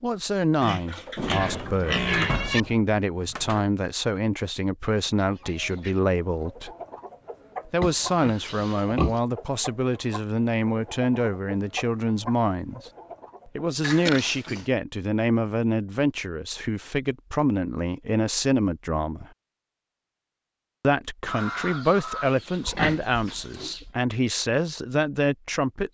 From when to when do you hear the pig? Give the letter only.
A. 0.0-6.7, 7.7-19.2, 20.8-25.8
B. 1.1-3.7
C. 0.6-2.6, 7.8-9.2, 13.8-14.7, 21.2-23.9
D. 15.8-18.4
C.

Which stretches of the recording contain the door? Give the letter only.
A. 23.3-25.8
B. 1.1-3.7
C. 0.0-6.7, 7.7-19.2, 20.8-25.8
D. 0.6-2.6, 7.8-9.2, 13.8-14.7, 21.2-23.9
B.